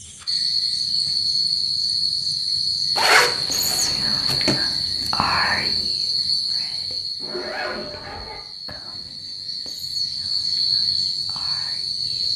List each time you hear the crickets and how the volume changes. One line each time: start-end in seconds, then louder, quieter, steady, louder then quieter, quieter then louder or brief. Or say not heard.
0.0-12.3 quieter then louder.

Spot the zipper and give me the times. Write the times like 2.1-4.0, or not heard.
3.0-4.6, 7.2-8.4.